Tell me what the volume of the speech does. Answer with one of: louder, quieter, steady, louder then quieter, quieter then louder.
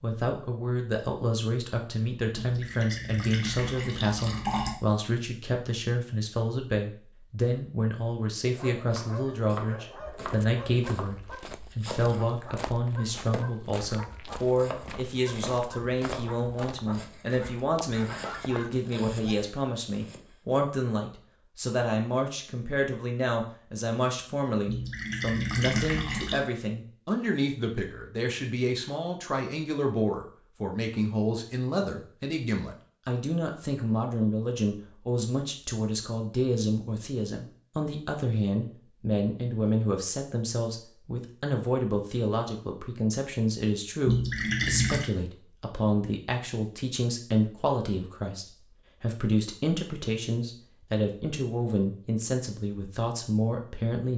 steady.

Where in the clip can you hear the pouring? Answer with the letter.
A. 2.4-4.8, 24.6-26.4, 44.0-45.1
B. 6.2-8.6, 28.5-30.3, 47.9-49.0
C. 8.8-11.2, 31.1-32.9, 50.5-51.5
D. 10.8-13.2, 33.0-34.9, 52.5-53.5
A.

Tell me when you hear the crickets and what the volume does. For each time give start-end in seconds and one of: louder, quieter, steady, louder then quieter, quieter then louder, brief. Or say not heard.
not heard.